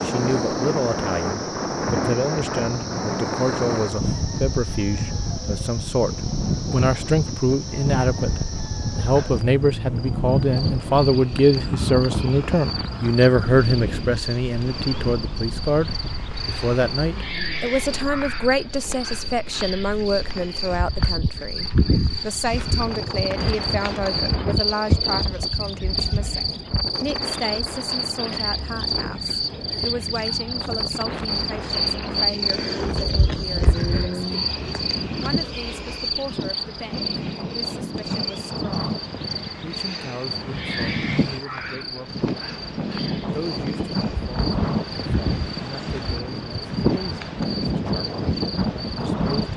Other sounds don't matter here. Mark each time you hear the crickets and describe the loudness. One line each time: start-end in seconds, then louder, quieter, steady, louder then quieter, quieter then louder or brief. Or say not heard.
0.0-49.5 louder then quieter.